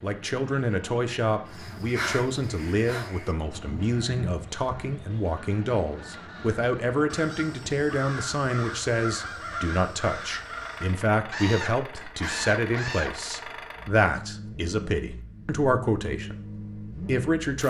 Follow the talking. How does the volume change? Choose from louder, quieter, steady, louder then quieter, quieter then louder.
steady.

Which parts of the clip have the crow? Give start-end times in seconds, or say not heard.
1.4-13.2.